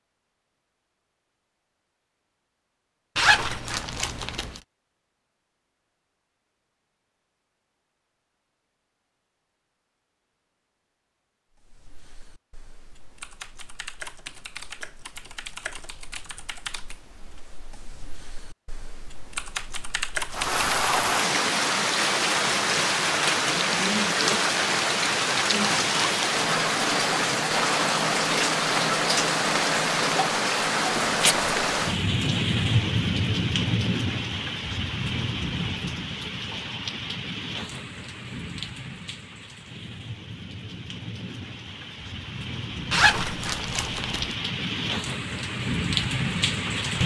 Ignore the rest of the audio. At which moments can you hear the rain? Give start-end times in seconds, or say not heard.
20.3-47.0.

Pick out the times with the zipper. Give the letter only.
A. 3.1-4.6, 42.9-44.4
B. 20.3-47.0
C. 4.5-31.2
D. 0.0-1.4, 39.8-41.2
A.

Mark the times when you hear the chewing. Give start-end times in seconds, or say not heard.
not heard.